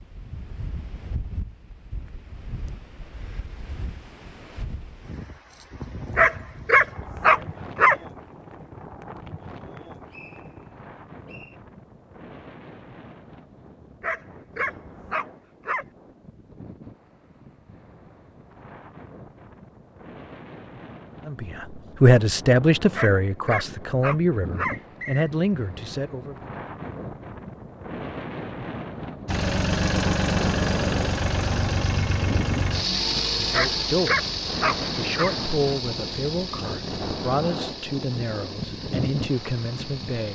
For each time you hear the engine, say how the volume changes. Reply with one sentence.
The engine can be heard from 29.2 to 40.3 s, getting quieter.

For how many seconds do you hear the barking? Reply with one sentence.
The barking can be heard for 7 seconds in total.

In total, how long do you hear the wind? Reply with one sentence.
You can hear the wind for 40 seconds altogether.